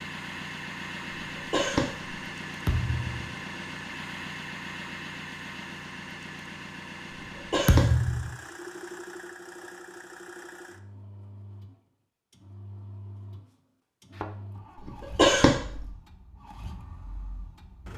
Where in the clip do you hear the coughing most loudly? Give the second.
15 s.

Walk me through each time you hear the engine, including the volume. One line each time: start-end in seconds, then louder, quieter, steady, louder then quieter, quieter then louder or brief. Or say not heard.
0.0-17.9 quieter.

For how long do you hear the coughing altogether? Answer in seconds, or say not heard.
3 s.